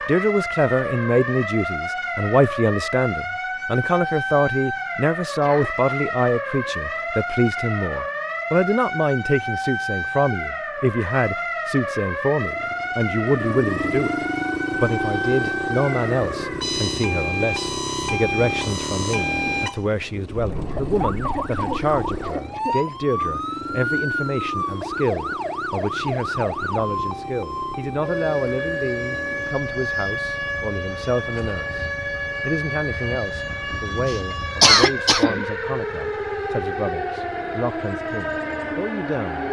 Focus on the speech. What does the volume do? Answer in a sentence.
The loudness of the speech goes down.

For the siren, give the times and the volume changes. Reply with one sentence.
The siren can be heard from 0.0 to 39.4 s, at a steady volume.